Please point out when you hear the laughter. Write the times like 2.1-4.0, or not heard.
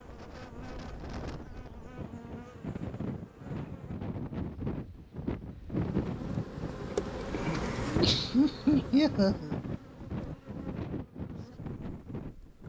7.8-9.6.